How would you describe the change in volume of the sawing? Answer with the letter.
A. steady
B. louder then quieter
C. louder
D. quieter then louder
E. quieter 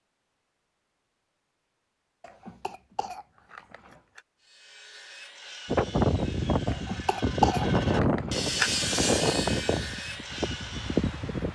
B.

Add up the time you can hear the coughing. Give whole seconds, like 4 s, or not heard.
4 s.